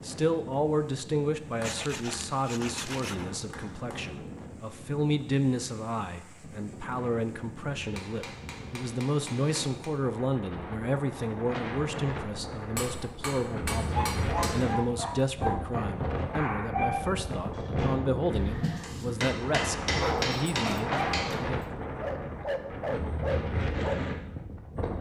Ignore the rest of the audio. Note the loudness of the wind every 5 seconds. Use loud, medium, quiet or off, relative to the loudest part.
medium, medium, loud, loud, loud.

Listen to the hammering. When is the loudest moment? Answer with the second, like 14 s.
20 s.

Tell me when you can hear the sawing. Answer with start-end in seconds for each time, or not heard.
1.6-3.2.